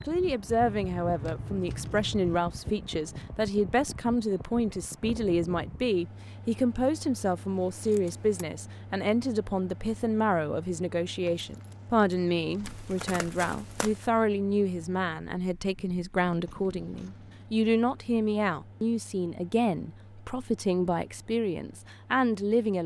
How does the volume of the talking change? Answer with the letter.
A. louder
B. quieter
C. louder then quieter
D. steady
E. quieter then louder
D.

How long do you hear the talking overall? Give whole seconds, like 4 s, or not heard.
23 s.